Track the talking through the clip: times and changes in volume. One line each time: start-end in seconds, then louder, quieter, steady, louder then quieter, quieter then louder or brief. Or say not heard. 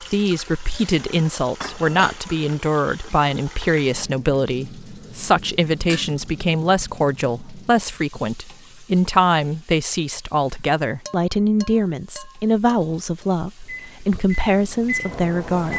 0.0-15.7 steady.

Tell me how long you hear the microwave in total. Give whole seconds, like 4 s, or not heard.
2 s.